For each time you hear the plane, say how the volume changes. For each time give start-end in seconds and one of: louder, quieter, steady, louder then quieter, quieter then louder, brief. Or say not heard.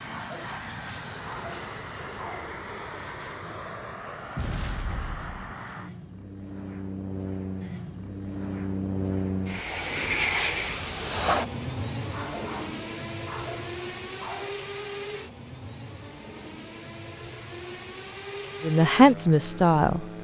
0.0-20.2 louder then quieter.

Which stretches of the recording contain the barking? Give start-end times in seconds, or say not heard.
0.1-2.5, 12.1-14.7.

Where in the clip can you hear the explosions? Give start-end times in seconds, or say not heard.
4.3-5.5.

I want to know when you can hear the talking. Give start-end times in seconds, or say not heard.
18.6-20.2.